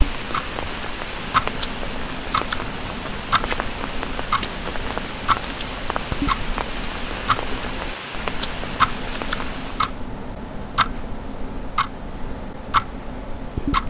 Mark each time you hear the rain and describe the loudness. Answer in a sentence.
You can hear the rain from 0.0 to 10.0 s, at a steady volume.